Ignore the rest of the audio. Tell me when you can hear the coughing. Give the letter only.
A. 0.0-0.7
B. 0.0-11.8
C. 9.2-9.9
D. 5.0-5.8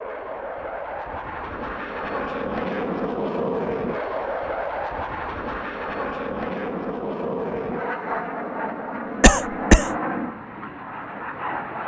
C.